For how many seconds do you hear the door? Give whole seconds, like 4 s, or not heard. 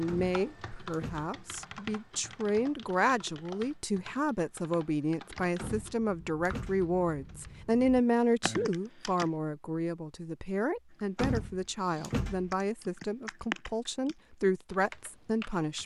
4 s.